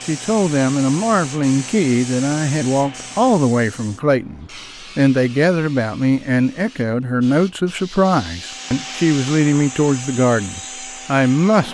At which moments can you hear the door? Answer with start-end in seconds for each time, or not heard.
not heard.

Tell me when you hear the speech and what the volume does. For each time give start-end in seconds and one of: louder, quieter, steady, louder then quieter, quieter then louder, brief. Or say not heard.
0.1-11.7 steady.